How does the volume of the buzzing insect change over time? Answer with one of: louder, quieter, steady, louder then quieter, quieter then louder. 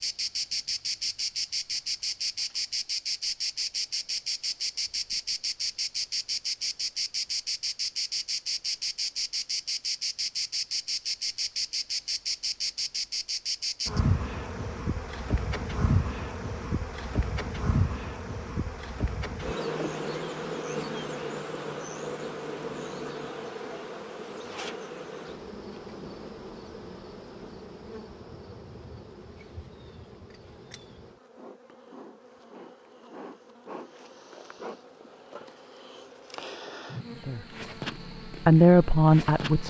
quieter.